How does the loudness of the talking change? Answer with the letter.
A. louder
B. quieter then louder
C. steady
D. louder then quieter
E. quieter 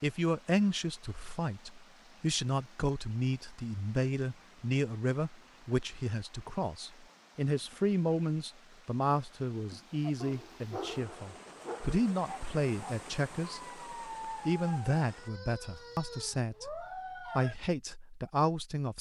C.